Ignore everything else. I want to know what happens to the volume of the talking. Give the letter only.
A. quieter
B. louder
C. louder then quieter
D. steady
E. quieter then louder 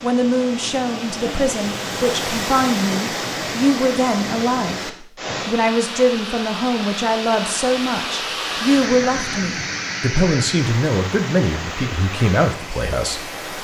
D.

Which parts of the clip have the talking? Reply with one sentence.
The talking can be heard from 0.0 to 13.2 s.